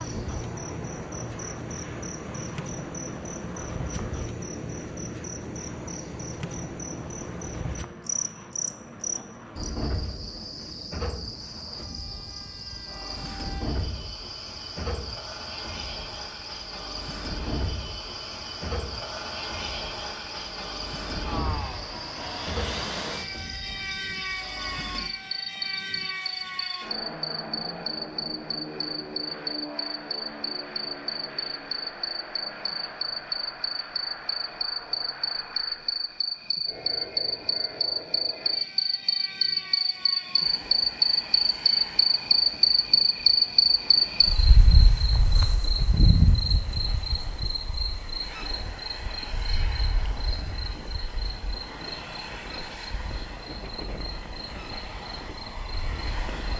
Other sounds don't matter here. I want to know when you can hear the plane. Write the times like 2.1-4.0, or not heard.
0.0-56.5.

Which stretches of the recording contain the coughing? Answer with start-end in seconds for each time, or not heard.
not heard.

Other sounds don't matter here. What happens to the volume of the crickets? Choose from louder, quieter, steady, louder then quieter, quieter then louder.
louder then quieter.